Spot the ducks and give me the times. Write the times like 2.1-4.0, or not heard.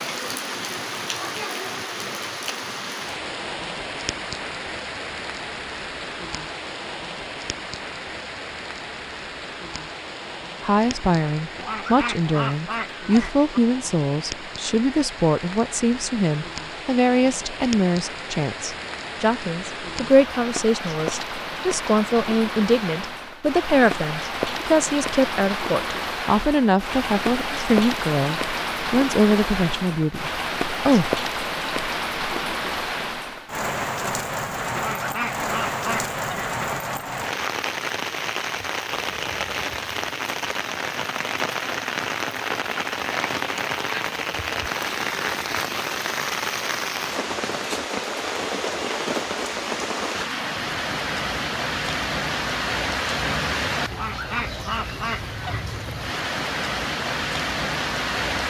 11.6-13.5, 34.8-36.5, 53.9-55.6.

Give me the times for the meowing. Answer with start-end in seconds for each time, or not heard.
not heard.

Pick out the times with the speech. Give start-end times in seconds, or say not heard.
10.6-31.2.